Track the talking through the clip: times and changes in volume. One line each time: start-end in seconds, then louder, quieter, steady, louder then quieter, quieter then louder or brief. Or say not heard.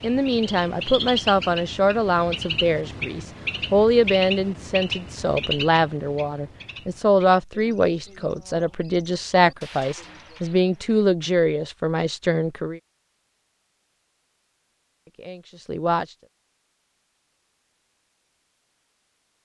0.0-12.8 steady
15.1-16.2 brief.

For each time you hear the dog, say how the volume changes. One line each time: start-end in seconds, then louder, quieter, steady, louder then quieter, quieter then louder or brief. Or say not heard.
not heard.